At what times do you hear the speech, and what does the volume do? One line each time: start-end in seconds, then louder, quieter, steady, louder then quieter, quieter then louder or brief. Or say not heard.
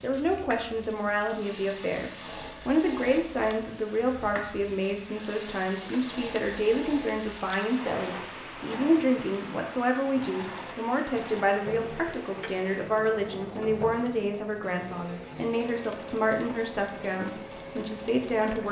0.0-18.6 steady.